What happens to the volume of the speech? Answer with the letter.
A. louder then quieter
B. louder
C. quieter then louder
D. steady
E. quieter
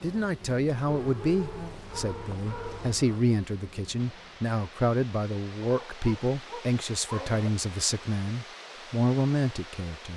D.